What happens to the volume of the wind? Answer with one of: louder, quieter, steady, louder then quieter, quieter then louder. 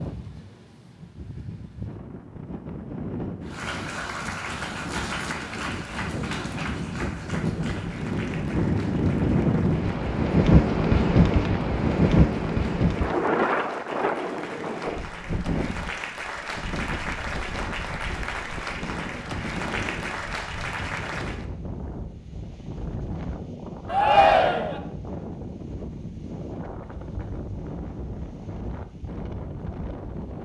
louder then quieter.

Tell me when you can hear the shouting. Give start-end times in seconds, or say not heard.
23.9-24.8.